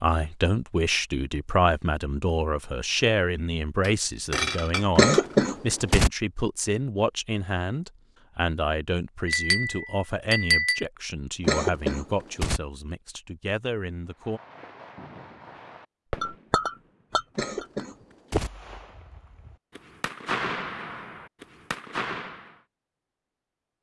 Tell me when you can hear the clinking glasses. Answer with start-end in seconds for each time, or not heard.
3.8-5.5, 9.2-10.8, 16.2-17.6.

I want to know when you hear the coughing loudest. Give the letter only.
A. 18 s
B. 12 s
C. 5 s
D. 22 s
C.